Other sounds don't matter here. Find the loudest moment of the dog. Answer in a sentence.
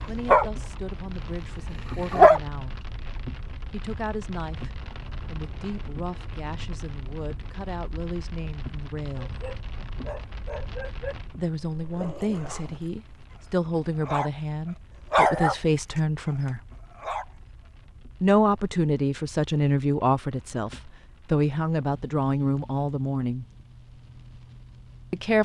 The loudest moment of the dog is at 2 seconds.